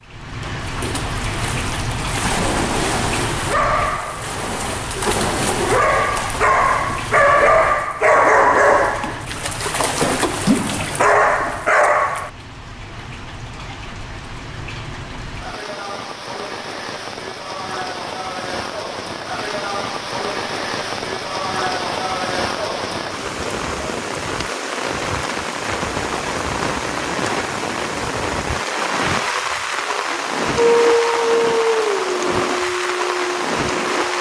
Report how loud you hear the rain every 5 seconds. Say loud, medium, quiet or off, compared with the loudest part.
medium, medium, quiet, medium, loud, loud, loud.